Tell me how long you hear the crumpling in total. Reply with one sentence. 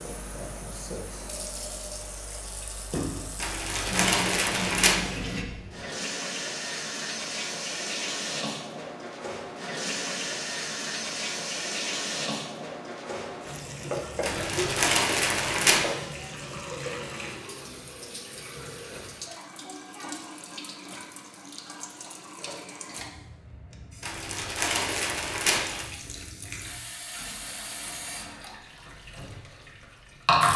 The crumpling can be heard for 5 seconds in total.